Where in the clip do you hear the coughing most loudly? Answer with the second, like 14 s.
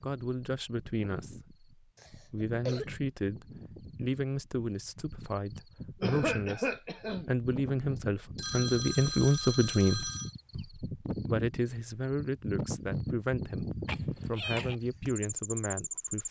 6 s.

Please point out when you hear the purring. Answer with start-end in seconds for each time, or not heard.
not heard.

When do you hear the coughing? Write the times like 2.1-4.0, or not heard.
1.9-2.9, 6.0-7.3, 13.8-14.8.